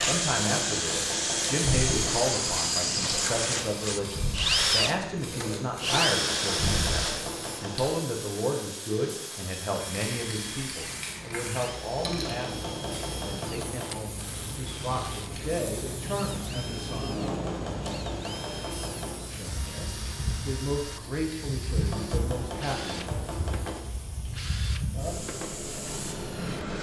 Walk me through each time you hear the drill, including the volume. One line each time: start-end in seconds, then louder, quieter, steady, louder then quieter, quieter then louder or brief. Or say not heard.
0.0-26.7 quieter.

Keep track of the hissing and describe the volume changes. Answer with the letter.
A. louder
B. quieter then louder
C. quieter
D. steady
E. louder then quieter
D.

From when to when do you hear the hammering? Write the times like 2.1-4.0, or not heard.
0.5-2.1, 6.0-7.8, 11.9-13.9, 17.1-19.2, 21.8-23.9.